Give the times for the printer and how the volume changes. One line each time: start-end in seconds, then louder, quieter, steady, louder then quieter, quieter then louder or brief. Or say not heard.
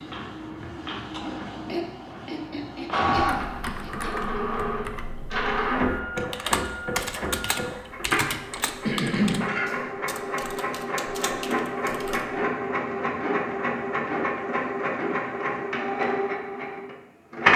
0.0-17.5 steady.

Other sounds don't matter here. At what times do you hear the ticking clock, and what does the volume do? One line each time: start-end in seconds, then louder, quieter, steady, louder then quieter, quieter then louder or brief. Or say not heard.
not heard.